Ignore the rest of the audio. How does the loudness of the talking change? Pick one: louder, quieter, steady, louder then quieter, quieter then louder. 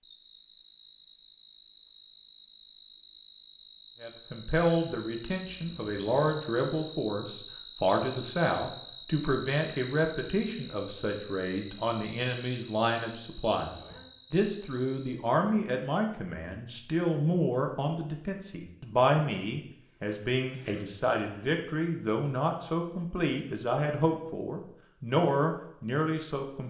steady.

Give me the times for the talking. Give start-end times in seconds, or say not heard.
4.0-26.6.